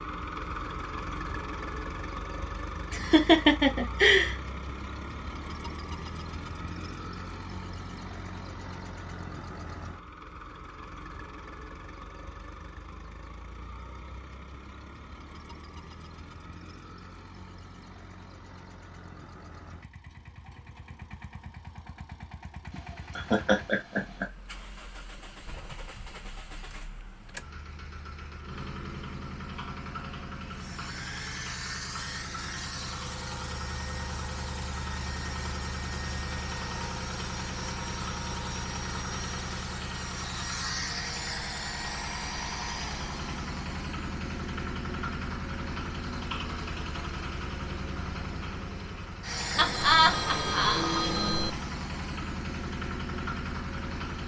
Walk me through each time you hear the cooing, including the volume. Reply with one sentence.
You can't hear the cooing here.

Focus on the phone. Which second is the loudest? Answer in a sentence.
The volume of the phone peaks at 51 seconds.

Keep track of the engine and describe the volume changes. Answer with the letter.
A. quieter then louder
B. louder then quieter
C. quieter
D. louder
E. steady
A.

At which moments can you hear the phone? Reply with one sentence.
You can hear the phone from 49.5 to 51.5 s.